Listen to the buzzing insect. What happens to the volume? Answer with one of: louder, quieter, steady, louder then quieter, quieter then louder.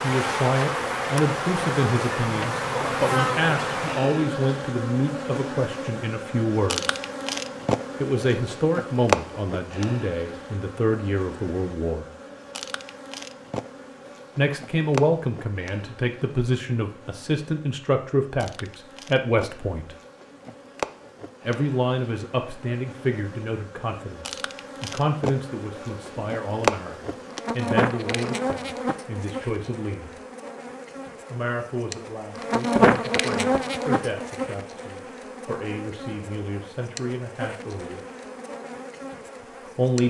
quieter then louder.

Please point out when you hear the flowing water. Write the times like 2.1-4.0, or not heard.
not heard.